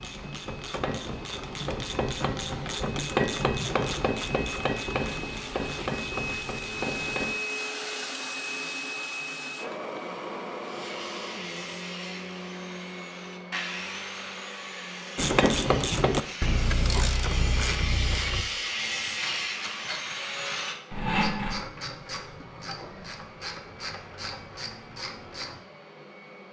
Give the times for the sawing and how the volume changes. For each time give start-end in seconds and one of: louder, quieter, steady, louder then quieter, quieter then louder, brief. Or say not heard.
10.6-21.6 louder.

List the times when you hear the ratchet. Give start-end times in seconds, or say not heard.
0.0-7.3, 15.2-25.6.